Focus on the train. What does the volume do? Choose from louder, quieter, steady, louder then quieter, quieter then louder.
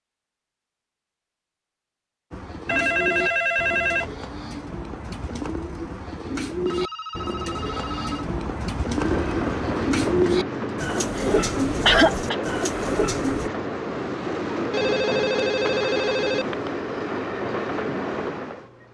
steady.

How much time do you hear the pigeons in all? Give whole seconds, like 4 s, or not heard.
11 s.